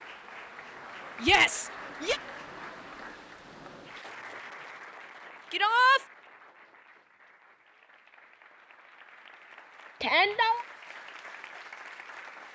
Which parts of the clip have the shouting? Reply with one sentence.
The shouting can be heard from 1.2 to 2.2 s, from 5.5 to 6.0 s and from 10.0 to 10.7 s.